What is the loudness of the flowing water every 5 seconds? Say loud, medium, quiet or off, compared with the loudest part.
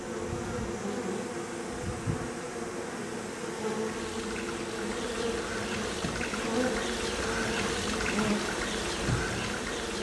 medium, loud.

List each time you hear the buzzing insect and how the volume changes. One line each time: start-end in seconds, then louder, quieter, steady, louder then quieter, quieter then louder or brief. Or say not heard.
0.0-9.9 steady.